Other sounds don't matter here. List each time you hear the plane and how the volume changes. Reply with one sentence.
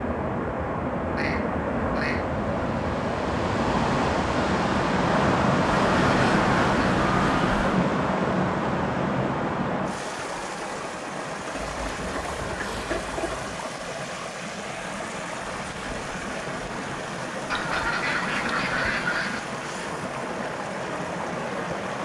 The plane can't be heard in this clip.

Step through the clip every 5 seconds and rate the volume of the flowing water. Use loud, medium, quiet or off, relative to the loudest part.
loud, loud, medium, medium, medium.